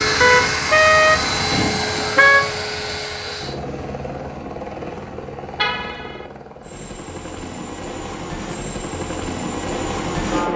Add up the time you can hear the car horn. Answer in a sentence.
You can hear the car horn for 3 seconds altogether.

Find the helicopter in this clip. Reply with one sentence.
You can hear the helicopter from 0.0 to 10.5 s.